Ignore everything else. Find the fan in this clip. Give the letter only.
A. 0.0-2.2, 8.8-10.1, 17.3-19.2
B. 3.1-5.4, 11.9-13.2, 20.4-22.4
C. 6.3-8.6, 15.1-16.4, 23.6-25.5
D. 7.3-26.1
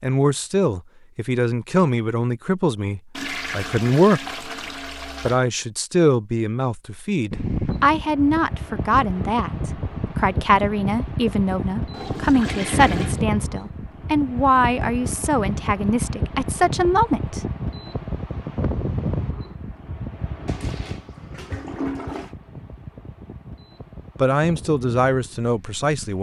D.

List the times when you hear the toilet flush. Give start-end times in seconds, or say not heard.
3.1-5.4, 11.9-13.2, 20.4-22.4.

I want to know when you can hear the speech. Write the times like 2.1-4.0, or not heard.
0.0-4.3, 5.2-17.4, 24.1-26.1.